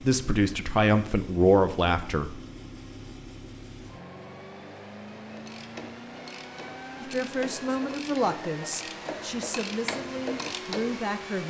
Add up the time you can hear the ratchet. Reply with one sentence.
The ratchet can be heard for 6 seconds in total.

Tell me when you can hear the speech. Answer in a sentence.
You can hear the speech from 0.0 to 2.4 s and from 7.0 to 11.4 s.